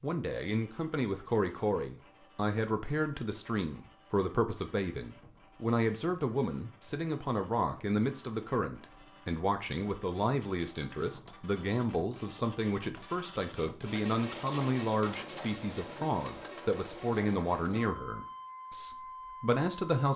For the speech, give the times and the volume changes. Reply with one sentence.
The speech can be heard from 0.0 to 20.1 s, at a steady volume.